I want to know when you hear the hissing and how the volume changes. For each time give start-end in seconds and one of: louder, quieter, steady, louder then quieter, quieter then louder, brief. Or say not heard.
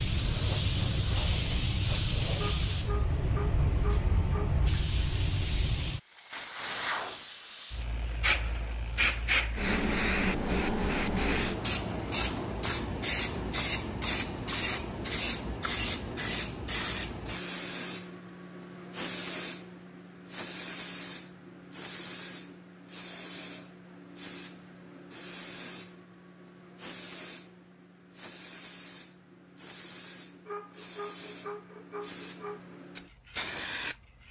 0.0-34.2 quieter.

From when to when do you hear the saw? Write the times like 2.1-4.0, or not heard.
2.4-4.5, 30.4-32.8.